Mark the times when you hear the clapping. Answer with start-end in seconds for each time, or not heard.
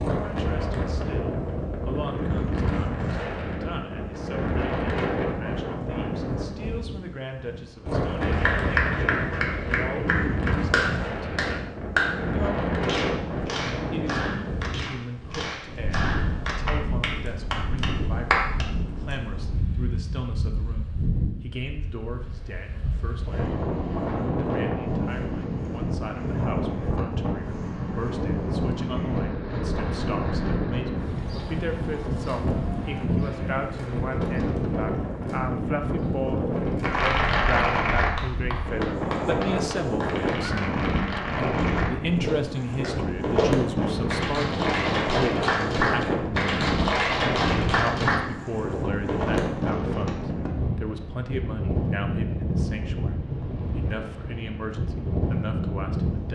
8.2-18.6, 36.8-48.2.